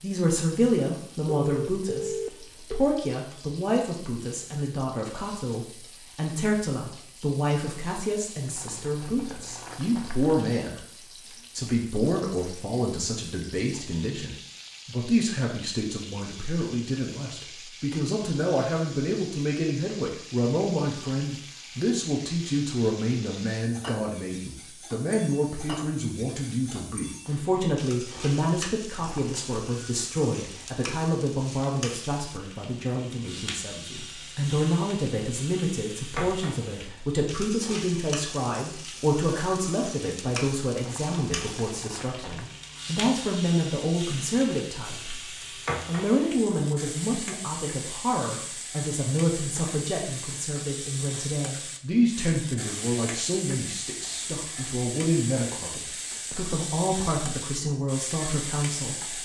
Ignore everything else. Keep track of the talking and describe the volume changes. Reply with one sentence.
The loudness of the talking stays about the same.